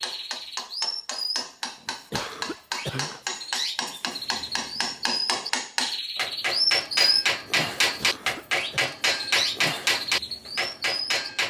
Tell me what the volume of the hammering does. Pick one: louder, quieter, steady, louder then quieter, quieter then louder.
louder.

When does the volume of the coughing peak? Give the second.
3 s.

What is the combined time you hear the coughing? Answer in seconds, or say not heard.
2 s.